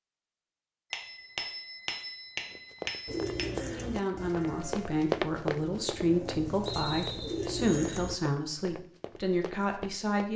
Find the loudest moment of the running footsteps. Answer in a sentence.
The volume of the running footsteps peaks at 5 seconds.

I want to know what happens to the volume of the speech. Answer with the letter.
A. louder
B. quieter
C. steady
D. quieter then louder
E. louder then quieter
C.